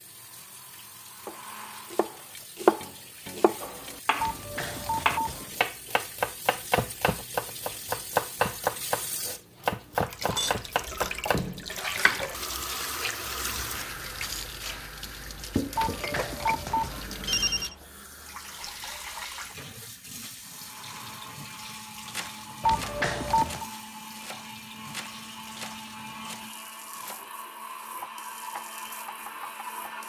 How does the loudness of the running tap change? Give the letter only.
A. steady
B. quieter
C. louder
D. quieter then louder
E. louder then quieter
E.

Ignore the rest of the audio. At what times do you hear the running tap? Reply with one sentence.
The running tap can be heard from 0.0 to 30.0 s.